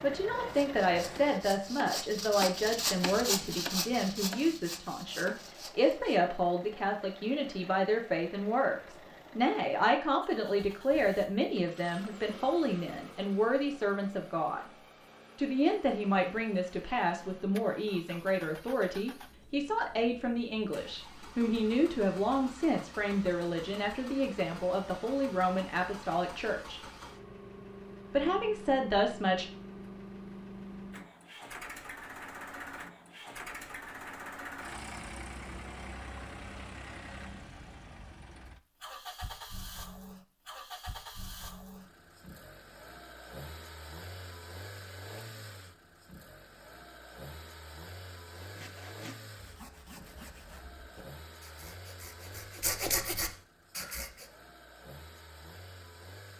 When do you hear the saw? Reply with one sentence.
You can hear the saw from 0.3 to 6.2 s and from 48.4 to 54.2 s.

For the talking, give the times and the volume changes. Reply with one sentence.
The talking can be heard from 0.0 to 14.6 s, at a steady volume; from 15.3 to 26.8 s, at a steady volume; and briefly from 28.1 to 29.4 s.